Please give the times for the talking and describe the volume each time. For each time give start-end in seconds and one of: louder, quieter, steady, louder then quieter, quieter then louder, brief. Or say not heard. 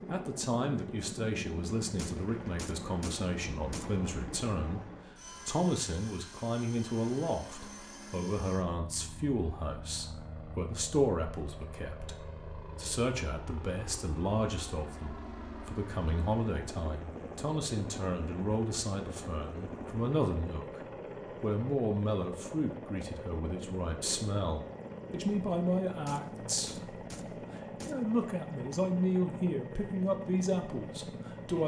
0.1-31.6 steady.